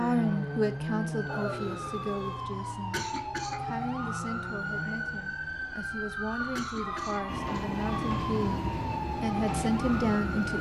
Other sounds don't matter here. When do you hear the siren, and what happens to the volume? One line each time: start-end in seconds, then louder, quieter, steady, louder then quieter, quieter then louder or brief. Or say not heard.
0.0-10.5 steady.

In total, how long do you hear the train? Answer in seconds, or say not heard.
3 s.